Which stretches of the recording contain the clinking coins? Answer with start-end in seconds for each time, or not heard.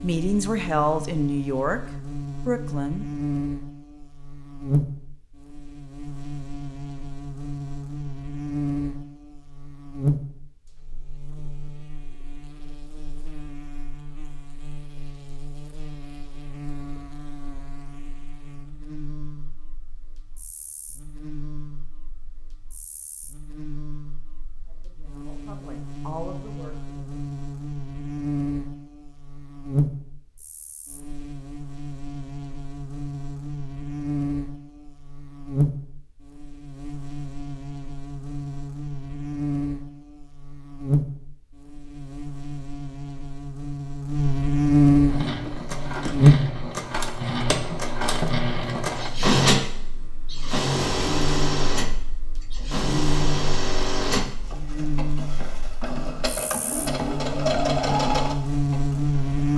not heard.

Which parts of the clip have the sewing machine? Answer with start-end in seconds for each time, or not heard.
45.0-59.5.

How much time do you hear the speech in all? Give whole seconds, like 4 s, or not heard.
5 s.